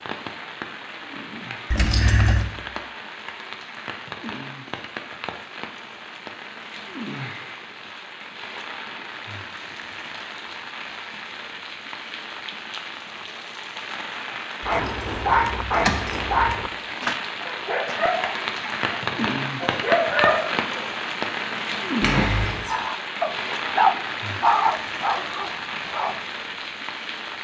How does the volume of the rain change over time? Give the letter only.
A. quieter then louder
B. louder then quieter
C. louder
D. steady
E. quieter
C.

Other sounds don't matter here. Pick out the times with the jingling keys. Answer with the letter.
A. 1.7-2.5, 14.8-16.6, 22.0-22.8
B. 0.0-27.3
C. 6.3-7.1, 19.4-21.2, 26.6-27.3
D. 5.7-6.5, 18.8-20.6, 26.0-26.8
A.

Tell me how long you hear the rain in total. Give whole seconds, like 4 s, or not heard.
27 s.